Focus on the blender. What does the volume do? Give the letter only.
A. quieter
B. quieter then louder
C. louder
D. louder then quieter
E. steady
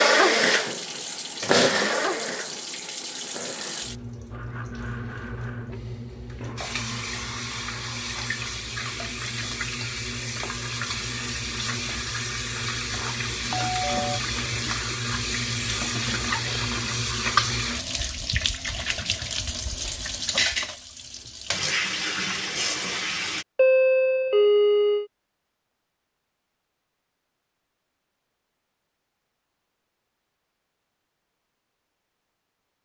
A.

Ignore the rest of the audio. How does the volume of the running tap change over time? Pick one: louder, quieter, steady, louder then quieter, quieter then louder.
louder.